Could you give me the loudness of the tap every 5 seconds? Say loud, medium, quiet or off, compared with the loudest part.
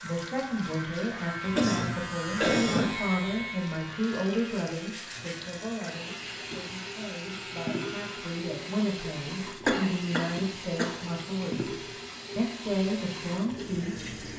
medium, loud, loud.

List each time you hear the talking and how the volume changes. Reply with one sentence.
The talking can be heard from 0.0 to 14.2 s, getting quieter then louder.